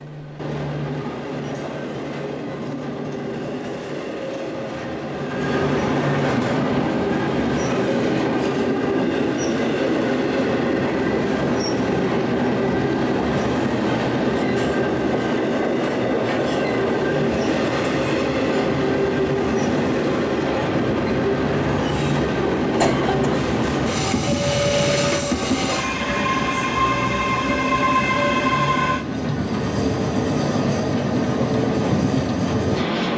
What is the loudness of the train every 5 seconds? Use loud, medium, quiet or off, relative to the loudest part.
medium, loud, loud, loud, loud, loud, loud.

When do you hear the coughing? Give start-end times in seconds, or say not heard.
22.8-23.4.